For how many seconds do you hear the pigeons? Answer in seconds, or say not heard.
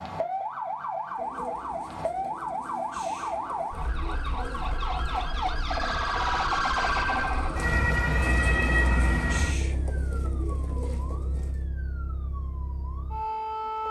11 s.